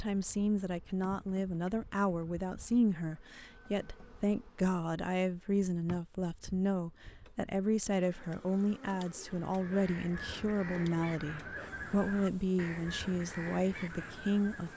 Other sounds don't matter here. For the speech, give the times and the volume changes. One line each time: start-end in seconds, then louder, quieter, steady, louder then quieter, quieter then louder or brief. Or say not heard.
0.0-14.7 steady.